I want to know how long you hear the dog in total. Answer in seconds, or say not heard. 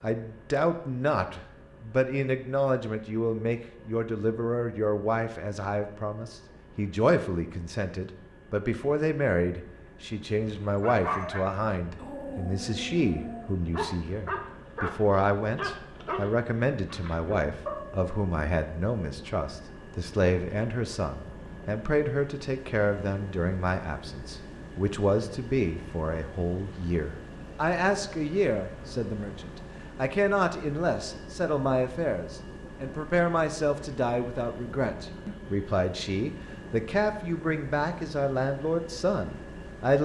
7 s.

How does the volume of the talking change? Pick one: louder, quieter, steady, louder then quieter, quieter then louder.
steady.